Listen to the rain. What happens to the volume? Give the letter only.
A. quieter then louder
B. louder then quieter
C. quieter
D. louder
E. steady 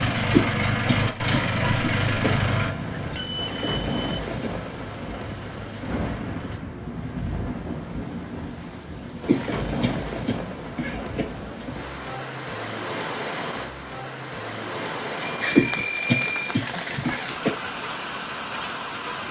E.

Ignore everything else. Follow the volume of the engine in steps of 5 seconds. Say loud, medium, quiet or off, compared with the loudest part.
loud, quiet, off, off.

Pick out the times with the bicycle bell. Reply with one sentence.
The bicycle bell can be heard from 2.4 to 4.2 s and from 15.2 to 16.6 s.